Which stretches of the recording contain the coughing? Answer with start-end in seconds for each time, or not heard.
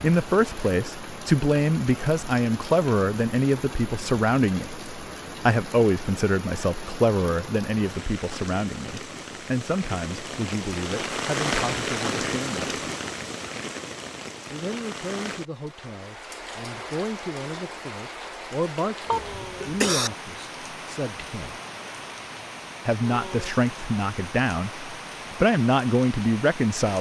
19.1-20.1.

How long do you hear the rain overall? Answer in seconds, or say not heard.
27 s.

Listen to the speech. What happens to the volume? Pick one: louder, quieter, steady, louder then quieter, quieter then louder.
quieter then louder.